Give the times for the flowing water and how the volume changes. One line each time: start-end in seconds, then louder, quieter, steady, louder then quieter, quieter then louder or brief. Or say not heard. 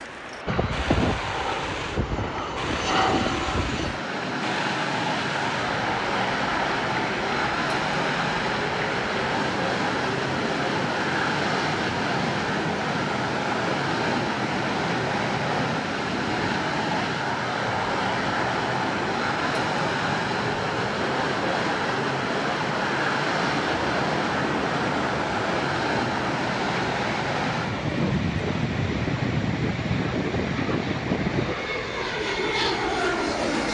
0.0-33.7 steady.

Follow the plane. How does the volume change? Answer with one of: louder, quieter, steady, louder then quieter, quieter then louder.
steady.